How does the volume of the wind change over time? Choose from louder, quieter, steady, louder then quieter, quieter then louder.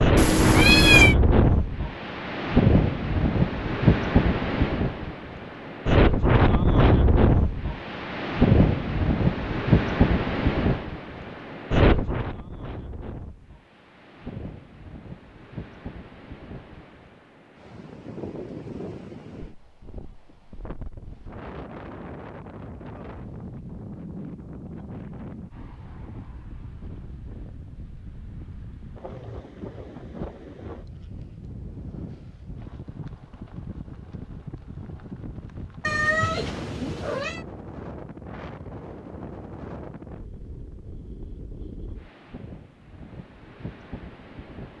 quieter.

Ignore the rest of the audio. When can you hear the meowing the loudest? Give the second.
1 s.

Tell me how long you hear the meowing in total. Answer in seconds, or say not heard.
3 s.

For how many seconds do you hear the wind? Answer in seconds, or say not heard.
45 s.